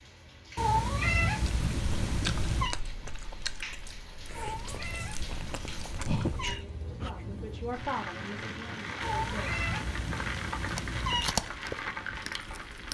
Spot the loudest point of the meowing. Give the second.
1 s.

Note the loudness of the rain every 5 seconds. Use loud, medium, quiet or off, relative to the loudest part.
medium, loud, loud.